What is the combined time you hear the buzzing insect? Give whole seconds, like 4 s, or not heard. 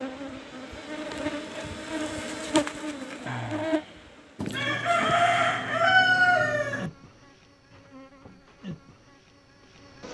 10 s.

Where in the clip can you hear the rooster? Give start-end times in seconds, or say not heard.
4.3-6.9.